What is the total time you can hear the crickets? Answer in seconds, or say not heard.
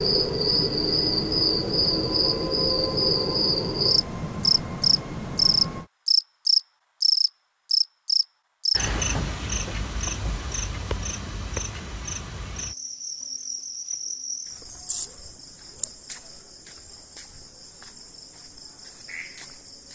20 s.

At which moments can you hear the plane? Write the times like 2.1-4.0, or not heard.
0.0-5.9.